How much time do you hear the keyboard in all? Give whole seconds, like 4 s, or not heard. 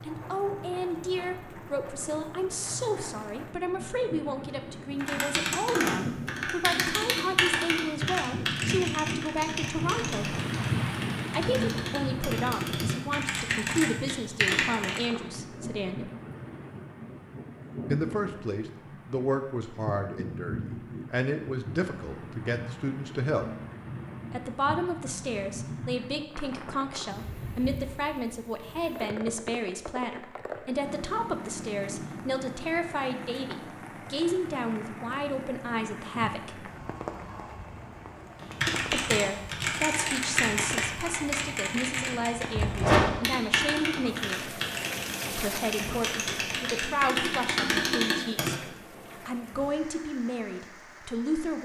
20 s.